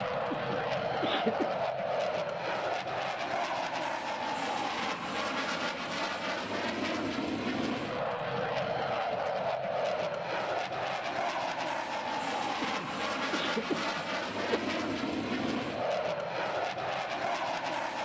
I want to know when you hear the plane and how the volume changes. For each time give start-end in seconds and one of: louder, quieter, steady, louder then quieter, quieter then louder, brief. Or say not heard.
0.0-18.0 steady.